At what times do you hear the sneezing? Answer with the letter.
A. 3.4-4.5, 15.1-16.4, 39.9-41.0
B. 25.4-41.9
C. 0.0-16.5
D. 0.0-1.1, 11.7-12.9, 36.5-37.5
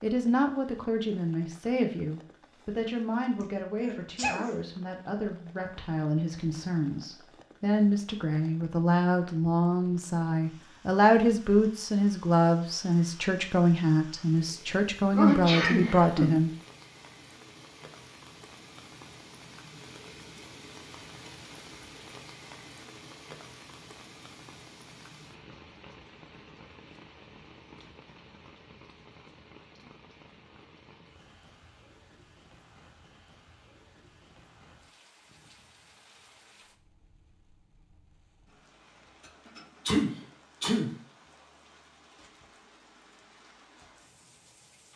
A.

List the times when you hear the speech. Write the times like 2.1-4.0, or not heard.
0.0-16.5.